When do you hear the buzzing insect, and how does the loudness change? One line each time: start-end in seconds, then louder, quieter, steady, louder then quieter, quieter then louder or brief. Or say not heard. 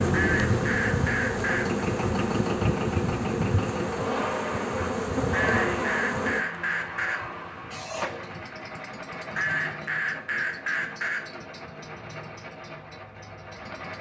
0.0-13.9 quieter.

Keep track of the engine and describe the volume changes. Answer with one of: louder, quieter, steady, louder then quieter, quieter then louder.
quieter.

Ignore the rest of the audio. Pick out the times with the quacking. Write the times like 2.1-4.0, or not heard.
0.1-1.8, 5.3-7.3, 9.3-11.3.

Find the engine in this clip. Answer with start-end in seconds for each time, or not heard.
0.0-13.9.